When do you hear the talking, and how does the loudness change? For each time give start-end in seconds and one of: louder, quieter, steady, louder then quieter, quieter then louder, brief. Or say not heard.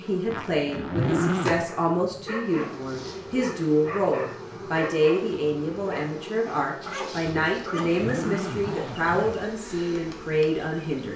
0.0-11.1 steady.